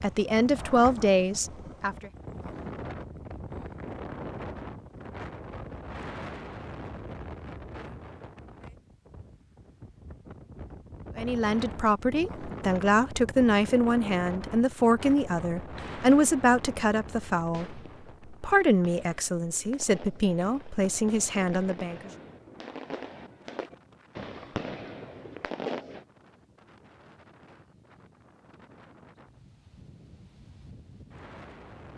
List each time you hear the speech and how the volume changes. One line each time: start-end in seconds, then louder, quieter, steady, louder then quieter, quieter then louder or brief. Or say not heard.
0.0-2.1 brief
11.2-22.1 steady.